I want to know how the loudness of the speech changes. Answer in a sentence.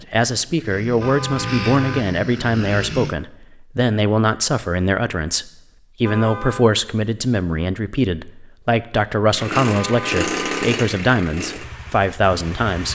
The loudness of the speech stays about the same.